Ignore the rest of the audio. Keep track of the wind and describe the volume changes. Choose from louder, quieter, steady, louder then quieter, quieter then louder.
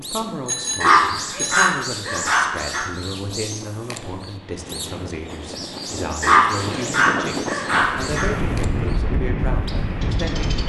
louder.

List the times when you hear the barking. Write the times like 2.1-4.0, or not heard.
0.8-2.8, 6.2-8.2.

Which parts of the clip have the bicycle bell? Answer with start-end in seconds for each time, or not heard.
0.5-1.8.